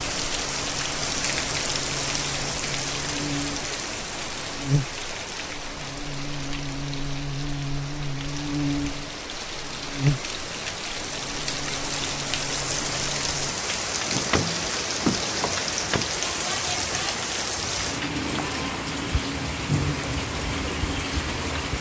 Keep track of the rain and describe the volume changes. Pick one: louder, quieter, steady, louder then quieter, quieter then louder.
quieter then louder.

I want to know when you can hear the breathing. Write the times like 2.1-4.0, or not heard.
not heard.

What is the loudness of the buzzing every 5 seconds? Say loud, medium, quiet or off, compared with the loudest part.
loud, loud, loud, off, off.